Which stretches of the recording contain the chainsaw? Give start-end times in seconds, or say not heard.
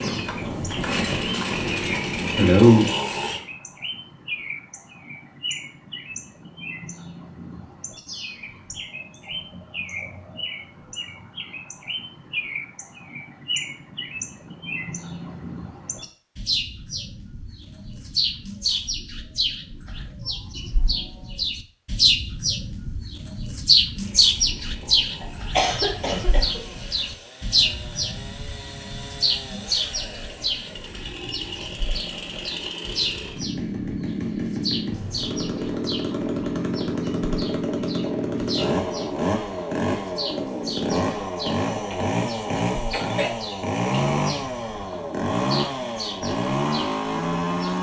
0.0-3.4, 23.9-47.7.